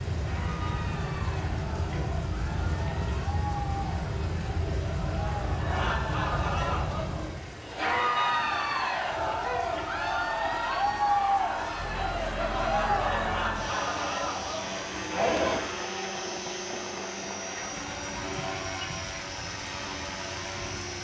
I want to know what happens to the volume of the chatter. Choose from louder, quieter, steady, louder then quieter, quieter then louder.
louder.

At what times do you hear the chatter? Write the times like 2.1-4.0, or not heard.
0.1-15.6.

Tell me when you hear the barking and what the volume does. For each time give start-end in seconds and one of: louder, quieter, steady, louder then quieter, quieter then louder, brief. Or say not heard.
not heard.